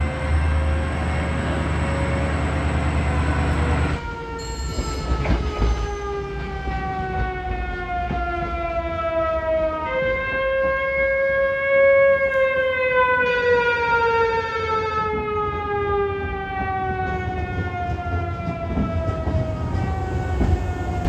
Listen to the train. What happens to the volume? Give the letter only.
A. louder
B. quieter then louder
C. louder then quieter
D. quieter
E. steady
B.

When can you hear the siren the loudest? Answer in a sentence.
The volume of the siren peaks at 12 seconds.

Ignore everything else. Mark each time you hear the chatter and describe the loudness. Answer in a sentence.
You can't hear the chatter here.